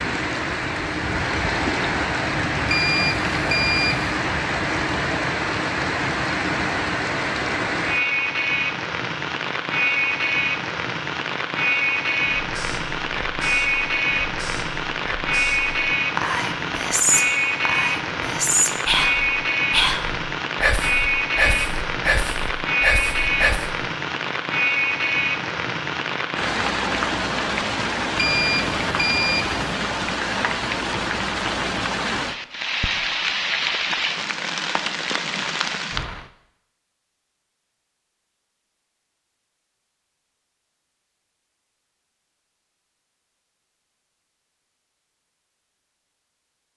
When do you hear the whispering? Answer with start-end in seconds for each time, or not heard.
12.4-23.8.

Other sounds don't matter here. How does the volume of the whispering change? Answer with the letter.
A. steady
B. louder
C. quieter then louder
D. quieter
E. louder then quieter
B.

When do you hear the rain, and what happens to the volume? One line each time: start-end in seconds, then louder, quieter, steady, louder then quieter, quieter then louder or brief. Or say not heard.
0.0-36.2 steady.